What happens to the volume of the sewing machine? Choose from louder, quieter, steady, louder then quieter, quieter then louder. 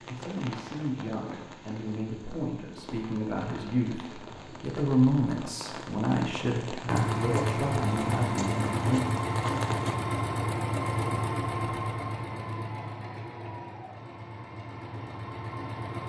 quieter.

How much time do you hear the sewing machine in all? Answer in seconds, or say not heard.
9 s.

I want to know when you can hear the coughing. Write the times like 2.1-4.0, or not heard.
not heard.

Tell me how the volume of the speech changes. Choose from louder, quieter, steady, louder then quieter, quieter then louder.
louder then quieter.